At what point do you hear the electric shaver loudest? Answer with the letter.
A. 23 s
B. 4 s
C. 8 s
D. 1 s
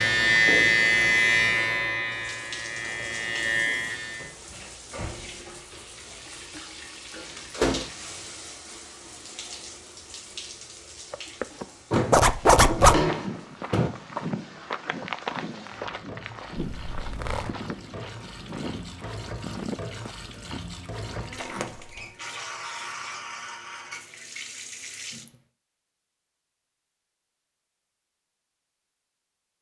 D.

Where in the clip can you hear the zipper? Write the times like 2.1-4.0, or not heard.
12.1-13.1, 16.6-17.5.